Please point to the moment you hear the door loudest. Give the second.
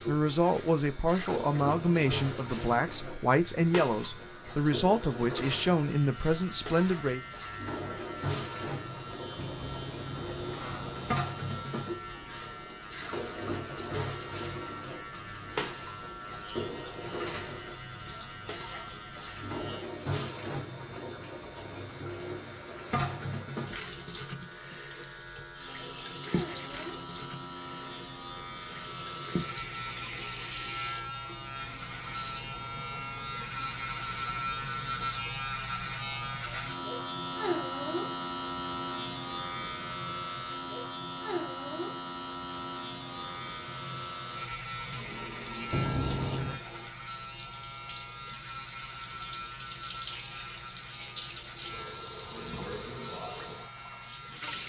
46 s.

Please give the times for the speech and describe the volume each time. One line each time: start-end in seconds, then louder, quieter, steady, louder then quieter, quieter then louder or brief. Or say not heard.
0.1-7.2 steady.